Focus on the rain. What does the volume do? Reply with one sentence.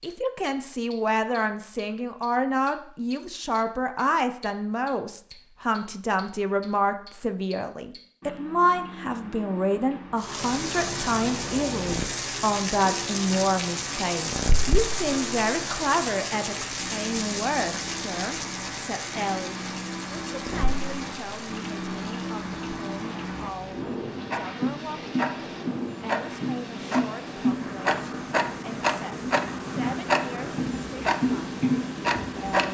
The volume of the rain goes down.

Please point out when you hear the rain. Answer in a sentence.
The rain can be heard from 10.2 to 32.5 s.